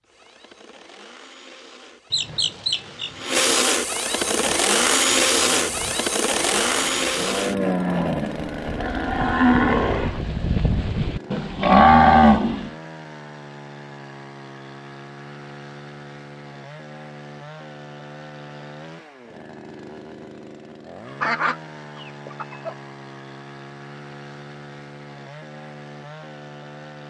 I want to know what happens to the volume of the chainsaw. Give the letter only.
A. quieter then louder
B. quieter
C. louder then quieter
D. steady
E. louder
B.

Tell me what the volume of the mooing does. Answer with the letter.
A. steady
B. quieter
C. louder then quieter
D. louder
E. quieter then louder
D.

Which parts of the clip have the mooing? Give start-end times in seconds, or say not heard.
4.3-12.7.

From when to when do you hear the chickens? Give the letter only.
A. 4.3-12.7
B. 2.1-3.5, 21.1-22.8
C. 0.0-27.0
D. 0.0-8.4
B.